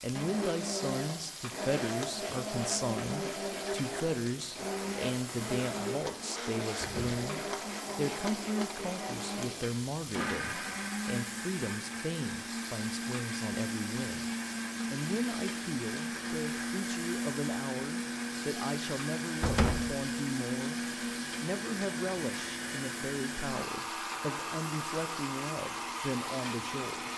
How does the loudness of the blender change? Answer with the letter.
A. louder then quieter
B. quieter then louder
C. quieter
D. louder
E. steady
E.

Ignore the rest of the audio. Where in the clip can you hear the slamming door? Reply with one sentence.
The slamming door can be heard from 6.8 to 7.2 s and from 19.4 to 19.9 s.